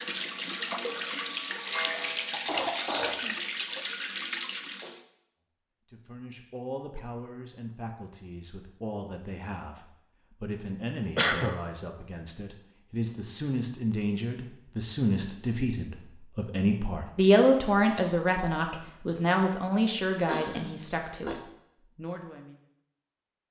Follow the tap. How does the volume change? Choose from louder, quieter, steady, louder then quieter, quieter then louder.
steady.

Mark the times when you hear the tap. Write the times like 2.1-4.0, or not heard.
0.0-5.0.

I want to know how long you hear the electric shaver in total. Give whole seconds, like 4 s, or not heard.
2 s.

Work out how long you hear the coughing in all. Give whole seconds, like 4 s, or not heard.
3 s.